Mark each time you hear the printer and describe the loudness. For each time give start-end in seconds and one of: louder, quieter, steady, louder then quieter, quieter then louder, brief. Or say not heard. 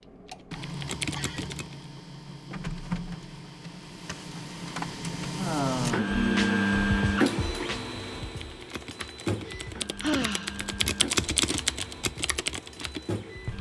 0.0-13.5 louder then quieter.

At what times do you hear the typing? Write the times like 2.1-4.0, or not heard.
0.0-1.8, 8.2-13.5.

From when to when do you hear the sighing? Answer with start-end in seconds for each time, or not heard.
1.0-1.6, 5.3-6.7, 9.4-10.7.